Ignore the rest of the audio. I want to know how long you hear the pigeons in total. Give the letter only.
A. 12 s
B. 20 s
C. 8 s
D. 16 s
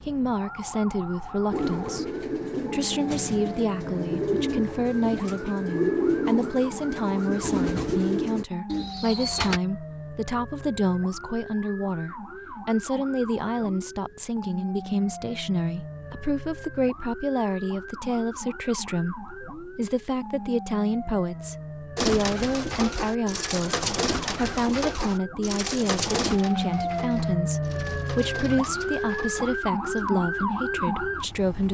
D.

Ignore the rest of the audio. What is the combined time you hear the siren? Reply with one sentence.
You can hear the siren for 32 seconds altogether.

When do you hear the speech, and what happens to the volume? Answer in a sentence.
The speech can be heard from 0.0 to 31.7 s, at a steady volume.